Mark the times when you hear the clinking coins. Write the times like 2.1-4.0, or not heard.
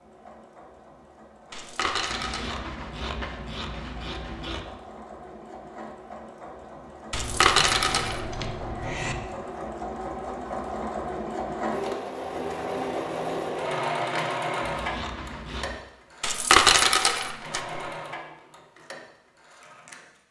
1.5-2.6, 7.1-8.2, 16.2-17.8.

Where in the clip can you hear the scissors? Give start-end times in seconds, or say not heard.
2.1-4.7, 7.1-9.2, 14.6-15.8.